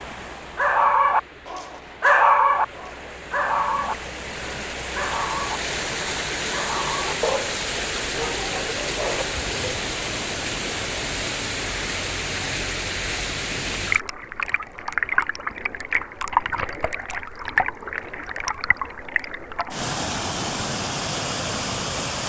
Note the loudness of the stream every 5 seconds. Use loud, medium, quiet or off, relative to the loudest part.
medium, loud, loud, loud, loud.